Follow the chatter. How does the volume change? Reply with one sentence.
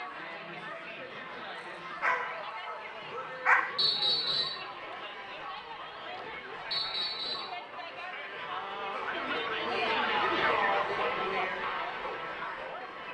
The volume of the chatter goes up.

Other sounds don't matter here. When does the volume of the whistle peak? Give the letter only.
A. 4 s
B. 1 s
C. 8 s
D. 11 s
A.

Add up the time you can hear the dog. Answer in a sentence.
You can hear the dog for 2 seconds altogether.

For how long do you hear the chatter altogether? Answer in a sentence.
You can hear the chatter for 13 seconds altogether.